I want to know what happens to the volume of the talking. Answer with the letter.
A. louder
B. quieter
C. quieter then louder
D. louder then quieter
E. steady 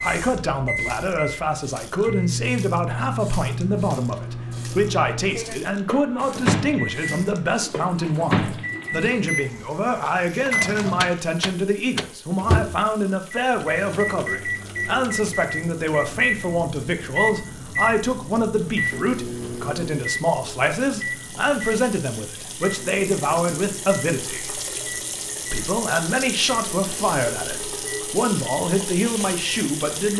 E.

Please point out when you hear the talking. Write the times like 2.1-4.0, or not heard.
0.0-24.6, 25.5-30.1.